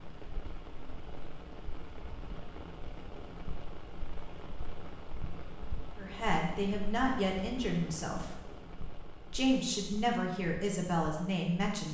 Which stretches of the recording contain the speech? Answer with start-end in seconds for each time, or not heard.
6.0-8.4, 9.3-11.8.